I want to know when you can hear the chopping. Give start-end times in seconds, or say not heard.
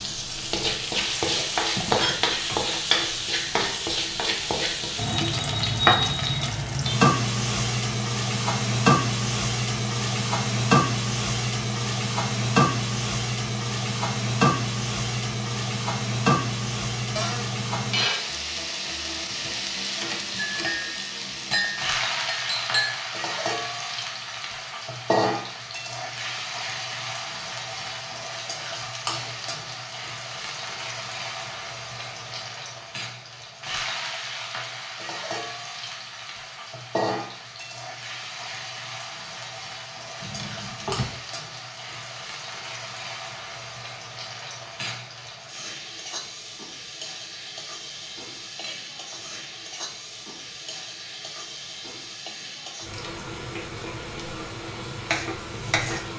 54.9-56.0.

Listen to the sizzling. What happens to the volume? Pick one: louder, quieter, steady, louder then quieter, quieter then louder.
quieter.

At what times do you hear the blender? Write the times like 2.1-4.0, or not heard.
not heard.